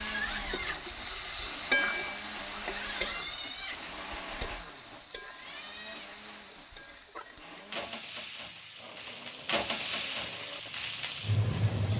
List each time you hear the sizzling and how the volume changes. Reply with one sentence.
The sizzling can be heard from 0.0 to 11.9 s, getting quieter then louder.